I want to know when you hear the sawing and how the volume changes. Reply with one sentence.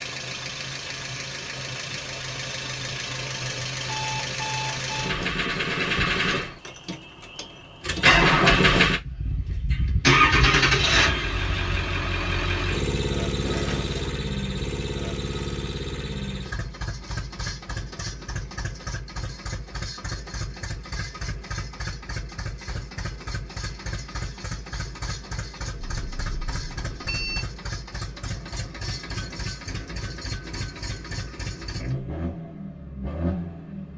You can't hear the sawing here.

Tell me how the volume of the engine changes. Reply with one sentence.
The loudness of the engine goes up, then down.